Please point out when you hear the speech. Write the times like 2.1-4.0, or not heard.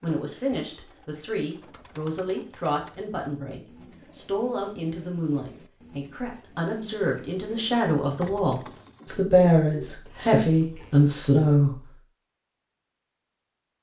0.0-11.8.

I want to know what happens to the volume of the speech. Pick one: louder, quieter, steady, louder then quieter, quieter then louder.
louder.